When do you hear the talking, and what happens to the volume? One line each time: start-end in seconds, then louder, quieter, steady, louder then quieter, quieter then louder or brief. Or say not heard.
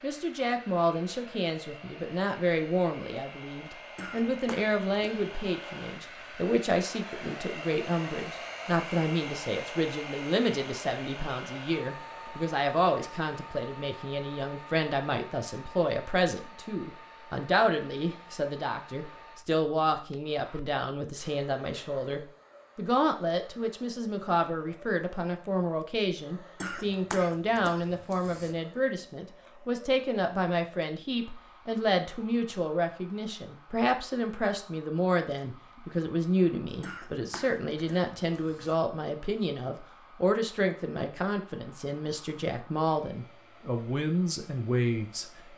0.0-45.2 steady.